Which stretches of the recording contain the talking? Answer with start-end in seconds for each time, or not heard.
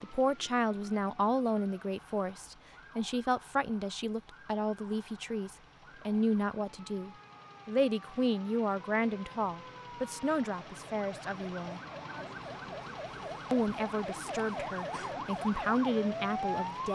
0.0-11.8, 13.5-16.9.